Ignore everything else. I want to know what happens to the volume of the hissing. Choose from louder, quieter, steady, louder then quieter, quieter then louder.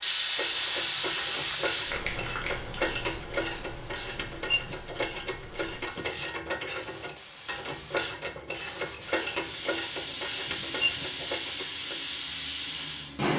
quieter then louder.